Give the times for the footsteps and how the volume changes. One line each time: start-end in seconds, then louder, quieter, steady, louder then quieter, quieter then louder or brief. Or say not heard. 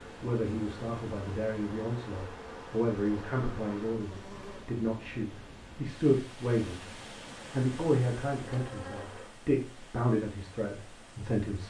not heard.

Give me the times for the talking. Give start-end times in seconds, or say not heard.
0.2-11.6.